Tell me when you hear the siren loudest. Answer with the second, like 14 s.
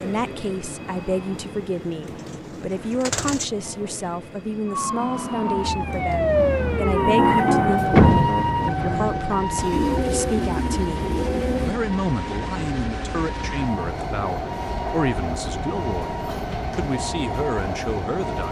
8 s.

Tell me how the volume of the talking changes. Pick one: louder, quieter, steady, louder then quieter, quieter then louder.
steady.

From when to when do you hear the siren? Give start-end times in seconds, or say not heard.
4.7-18.4.